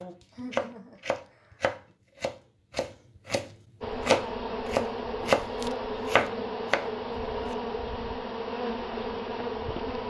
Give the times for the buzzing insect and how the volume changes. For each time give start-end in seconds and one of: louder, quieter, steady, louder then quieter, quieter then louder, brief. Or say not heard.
3.8-10.0 steady.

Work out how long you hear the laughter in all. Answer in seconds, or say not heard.
2 s.